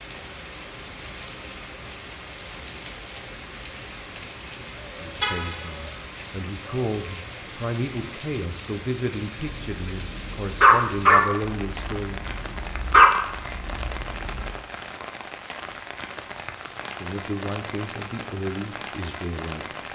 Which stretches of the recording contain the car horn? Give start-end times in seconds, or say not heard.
5.2-5.9.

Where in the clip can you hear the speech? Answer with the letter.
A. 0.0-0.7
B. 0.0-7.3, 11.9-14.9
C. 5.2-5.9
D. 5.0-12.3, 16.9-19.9
D.